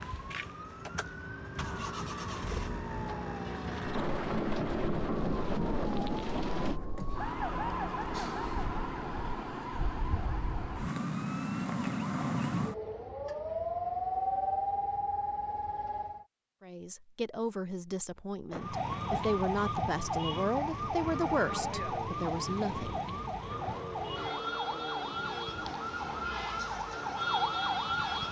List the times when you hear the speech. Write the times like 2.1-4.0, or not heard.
16.6-23.2.